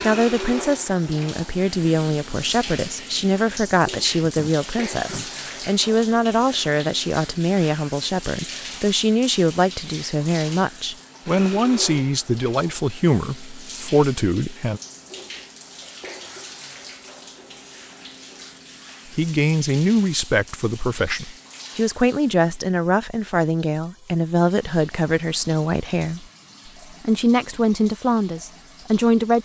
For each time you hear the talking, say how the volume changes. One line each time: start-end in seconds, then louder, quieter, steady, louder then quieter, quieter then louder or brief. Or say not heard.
0.0-14.8 steady
19.1-26.2 steady
27.0-29.3 brief.